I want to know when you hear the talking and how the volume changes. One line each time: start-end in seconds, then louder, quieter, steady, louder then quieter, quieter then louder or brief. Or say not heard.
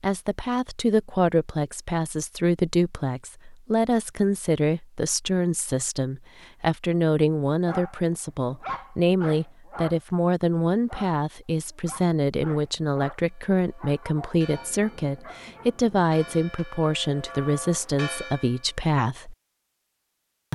0.0-19.4 steady.